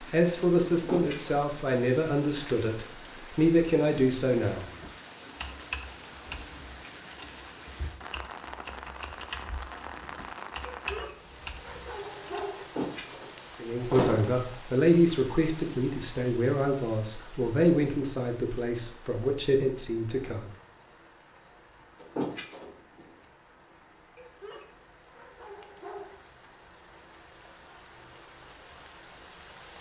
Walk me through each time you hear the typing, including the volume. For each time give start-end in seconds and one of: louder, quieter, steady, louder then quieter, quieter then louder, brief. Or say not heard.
4.6-12.4 quieter then louder.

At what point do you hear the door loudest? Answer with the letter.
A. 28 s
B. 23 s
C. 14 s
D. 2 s
C.